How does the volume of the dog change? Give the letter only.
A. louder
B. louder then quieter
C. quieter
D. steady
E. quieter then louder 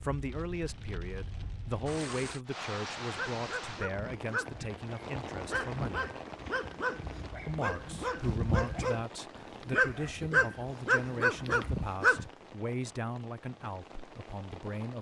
A.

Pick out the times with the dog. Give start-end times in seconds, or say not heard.
3.1-12.3.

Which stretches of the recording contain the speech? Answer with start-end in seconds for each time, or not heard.
0.0-6.1, 7.5-14.9.